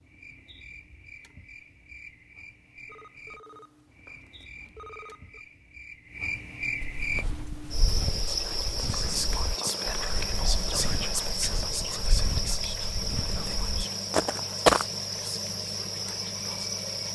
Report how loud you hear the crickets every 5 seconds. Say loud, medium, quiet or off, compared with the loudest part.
quiet, loud, loud, loud.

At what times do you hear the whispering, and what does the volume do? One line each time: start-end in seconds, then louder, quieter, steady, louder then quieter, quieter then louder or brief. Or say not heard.
8.2-16.7 quieter.